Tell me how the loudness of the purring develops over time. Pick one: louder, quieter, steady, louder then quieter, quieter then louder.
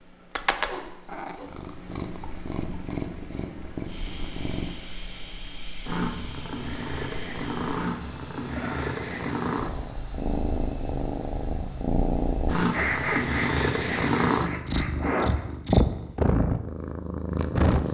louder.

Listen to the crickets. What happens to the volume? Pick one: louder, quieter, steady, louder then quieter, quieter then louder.
quieter.